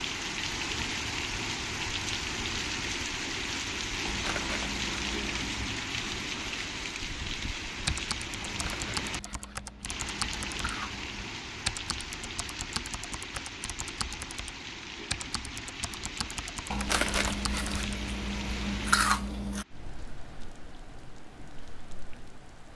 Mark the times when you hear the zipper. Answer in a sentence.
The zipper can't be heard in this clip.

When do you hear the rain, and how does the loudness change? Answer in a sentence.
The rain can be heard from 0.0 to 22.7 s, getting quieter.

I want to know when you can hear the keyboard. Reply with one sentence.
You can hear the keyboard from 7.8 to 10.7 s and from 11.7 to 17.9 s.